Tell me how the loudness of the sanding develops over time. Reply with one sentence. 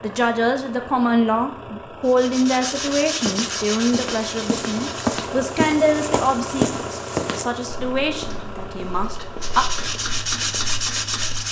The loudness of the sanding goes down, then up.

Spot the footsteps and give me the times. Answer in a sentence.
The footsteps can be heard from 2.9 to 11.3 s.